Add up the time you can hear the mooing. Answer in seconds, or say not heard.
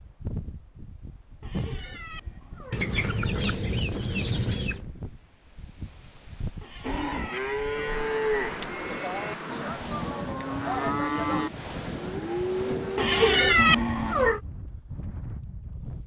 7 s.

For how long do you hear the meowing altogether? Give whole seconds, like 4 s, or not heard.
5 s.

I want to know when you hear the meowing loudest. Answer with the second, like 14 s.
14 s.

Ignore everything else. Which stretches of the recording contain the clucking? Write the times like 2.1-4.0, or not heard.
2.7-4.8.